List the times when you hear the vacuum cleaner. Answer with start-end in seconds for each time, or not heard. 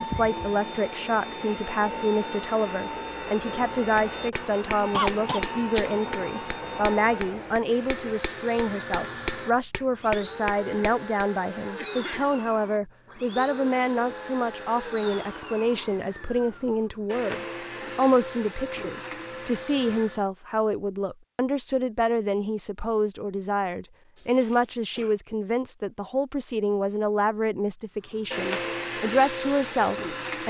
0.0-20.2, 28.1-30.4.